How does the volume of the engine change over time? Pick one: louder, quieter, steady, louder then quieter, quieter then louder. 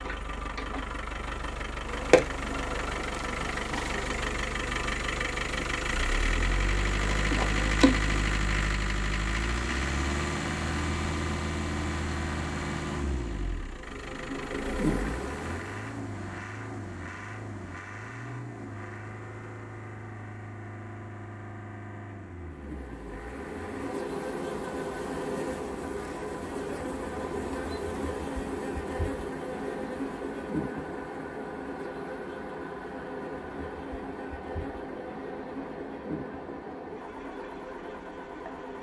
quieter.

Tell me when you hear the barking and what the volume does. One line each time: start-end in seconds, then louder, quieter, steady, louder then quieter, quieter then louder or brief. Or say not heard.
not heard.